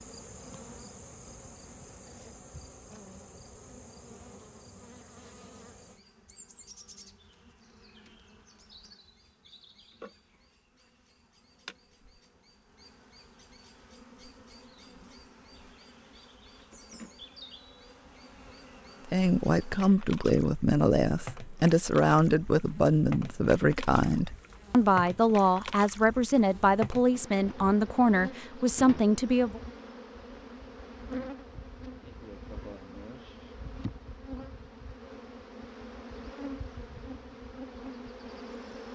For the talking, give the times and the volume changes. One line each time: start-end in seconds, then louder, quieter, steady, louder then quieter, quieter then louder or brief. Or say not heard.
19.1-29.6 steady.